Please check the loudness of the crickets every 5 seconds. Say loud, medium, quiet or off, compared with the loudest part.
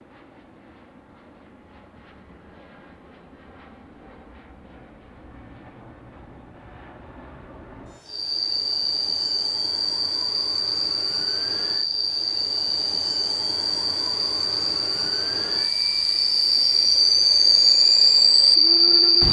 off, medium, medium, loud.